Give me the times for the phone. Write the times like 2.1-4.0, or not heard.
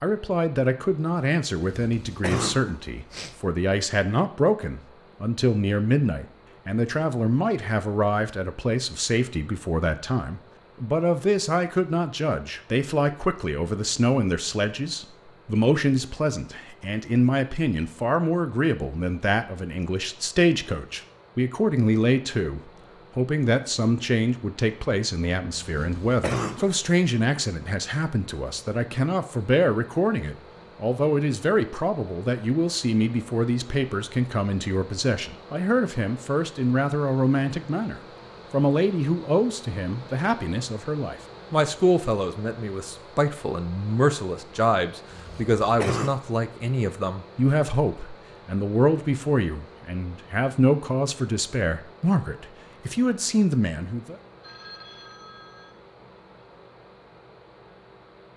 54.4-55.8.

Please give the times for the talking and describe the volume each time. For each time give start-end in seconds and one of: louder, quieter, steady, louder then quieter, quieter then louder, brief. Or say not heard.
0.0-54.1 steady.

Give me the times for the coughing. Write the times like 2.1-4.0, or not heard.
1.6-3.4, 25.6-26.8, 45.1-46.2.